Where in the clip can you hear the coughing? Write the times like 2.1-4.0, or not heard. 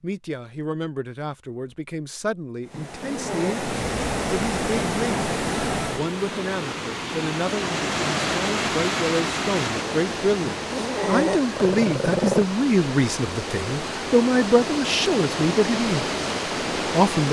not heard.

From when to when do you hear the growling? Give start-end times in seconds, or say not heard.
2.7-3.6, 10.4-12.4.